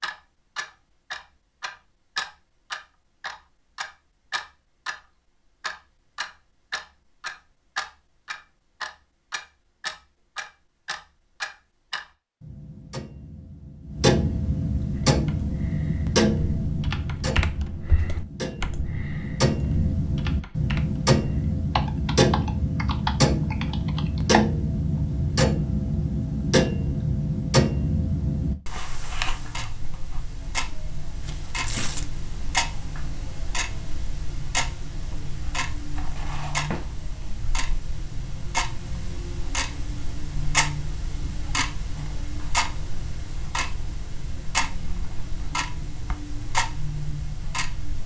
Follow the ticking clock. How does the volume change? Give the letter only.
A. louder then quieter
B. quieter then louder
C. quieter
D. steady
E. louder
A.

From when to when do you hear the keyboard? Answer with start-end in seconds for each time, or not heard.
14.9-24.4.